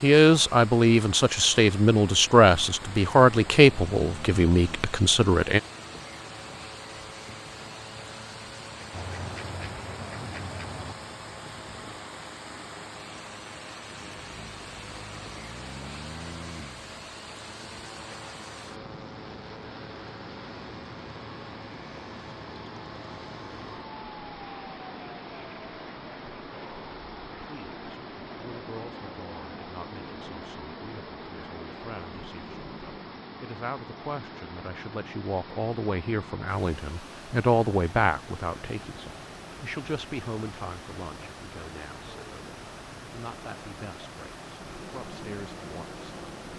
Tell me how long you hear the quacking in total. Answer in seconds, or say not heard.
2 s.